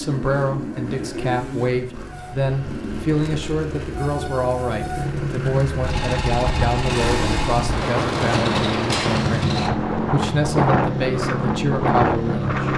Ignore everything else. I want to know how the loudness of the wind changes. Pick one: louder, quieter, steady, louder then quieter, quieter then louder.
louder.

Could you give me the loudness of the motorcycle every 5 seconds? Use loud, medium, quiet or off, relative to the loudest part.
medium, loud, loud.